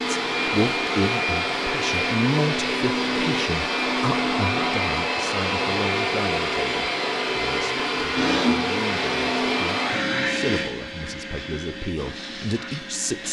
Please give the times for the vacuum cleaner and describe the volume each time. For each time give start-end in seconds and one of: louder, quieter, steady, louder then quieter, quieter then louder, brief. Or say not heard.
0.0-13.2 quieter.